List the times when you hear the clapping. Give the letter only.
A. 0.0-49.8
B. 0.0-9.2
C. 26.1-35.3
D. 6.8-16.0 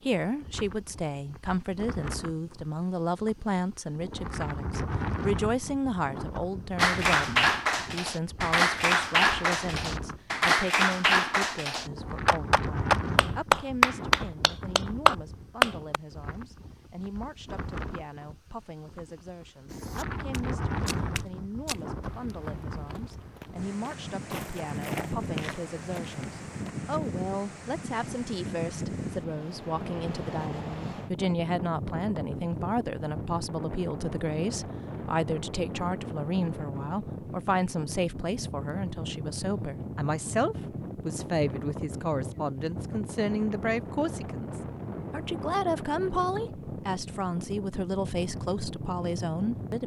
D.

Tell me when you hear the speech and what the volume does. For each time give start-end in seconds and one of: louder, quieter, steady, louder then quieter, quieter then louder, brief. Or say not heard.
0.0-49.8 quieter then louder.